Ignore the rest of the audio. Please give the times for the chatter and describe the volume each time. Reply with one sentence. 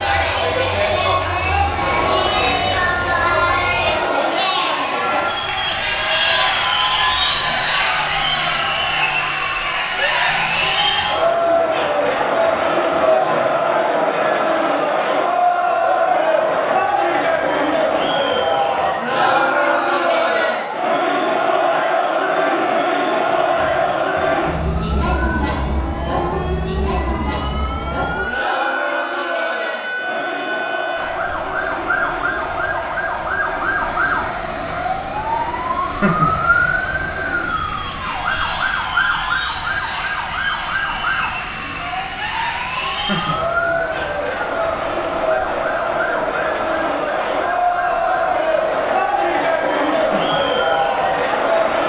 The chatter can be heard from 0.0 to 51.8 s, getting quieter then louder.